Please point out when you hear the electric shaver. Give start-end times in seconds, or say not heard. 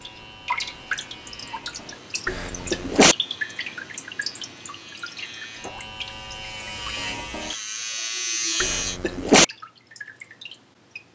0.0-9.0.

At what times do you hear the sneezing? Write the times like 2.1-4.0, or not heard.
2.2-3.1, 8.6-9.4.